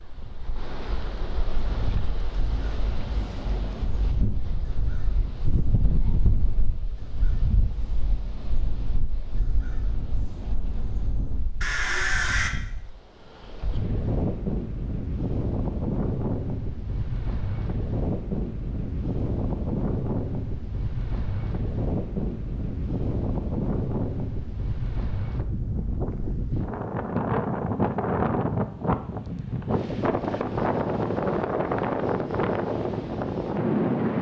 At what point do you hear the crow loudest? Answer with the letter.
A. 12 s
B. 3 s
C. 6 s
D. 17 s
A.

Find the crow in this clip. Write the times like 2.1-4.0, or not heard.
1.5-12.5.